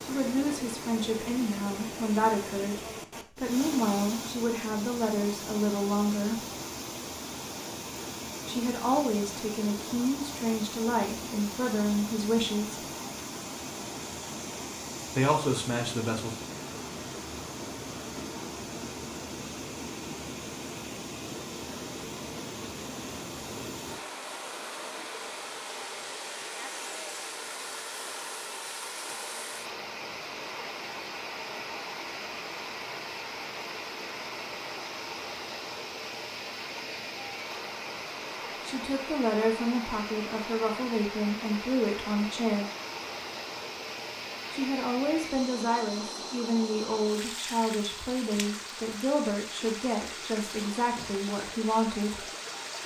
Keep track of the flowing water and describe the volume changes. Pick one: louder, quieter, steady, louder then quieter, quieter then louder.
steady.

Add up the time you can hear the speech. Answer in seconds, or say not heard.
24 s.